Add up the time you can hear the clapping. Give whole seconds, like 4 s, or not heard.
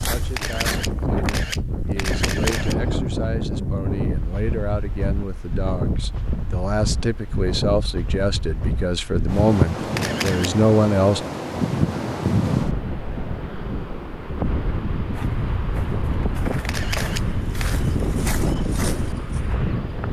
not heard.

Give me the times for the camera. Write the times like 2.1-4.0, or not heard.
0.3-2.8, 9.9-10.5, 16.6-17.8.